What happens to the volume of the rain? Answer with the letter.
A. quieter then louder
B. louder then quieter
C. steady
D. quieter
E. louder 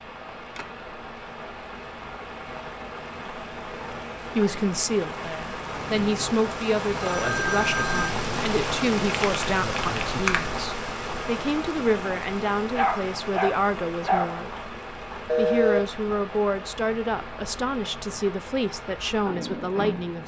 B.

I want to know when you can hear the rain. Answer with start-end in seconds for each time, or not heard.
0.0-20.2.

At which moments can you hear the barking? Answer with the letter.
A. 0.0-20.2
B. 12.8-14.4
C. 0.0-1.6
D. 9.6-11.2
B.